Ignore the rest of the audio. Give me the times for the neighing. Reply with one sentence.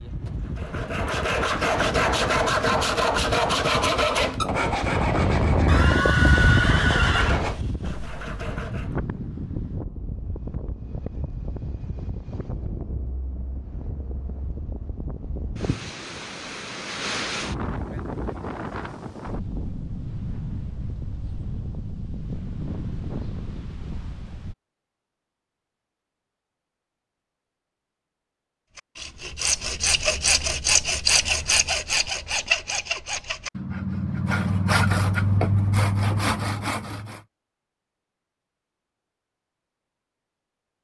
The neighing can be heard from 5.7 to 7.5 s.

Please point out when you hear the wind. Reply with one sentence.
You can hear the wind from 0.0 to 24.6 s.